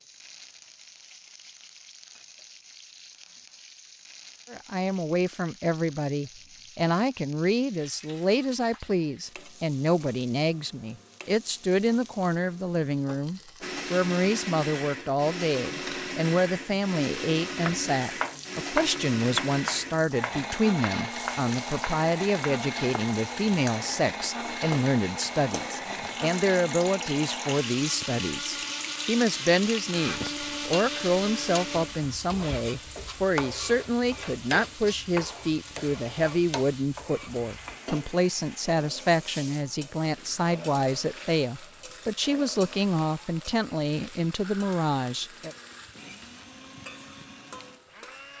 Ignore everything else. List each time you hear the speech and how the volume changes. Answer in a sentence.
You can hear the speech from 4.5 to 45.5 s, at a steady volume.